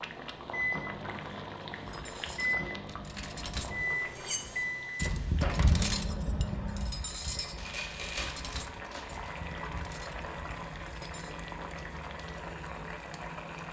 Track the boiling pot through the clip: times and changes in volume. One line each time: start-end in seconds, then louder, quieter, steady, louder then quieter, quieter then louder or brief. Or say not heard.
0.0-13.6 quieter then louder.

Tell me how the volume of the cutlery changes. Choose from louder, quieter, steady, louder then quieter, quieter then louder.
louder then quieter.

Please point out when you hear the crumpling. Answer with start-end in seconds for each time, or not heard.
7.5-9.4.